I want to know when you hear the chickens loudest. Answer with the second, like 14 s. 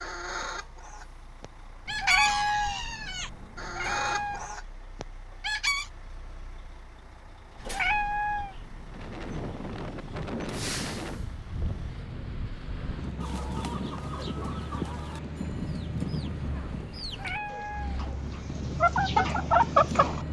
20 s.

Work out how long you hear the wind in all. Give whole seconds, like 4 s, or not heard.
11 s.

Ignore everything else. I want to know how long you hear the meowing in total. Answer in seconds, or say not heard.
5 s.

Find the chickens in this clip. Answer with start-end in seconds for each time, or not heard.
0.0-5.9, 13.2-20.2.